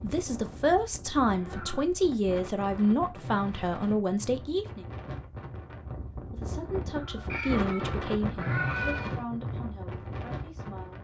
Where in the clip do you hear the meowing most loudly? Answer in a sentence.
The loudest moment of the meowing is at 9 seconds.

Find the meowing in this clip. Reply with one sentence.
You can hear the meowing from 1.2 to 1.9 s and from 6.9 to 9.2 s.